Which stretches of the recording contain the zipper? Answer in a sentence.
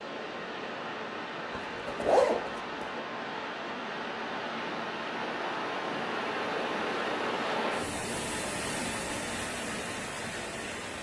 You can hear the zipper from 1.6 to 3.0 s.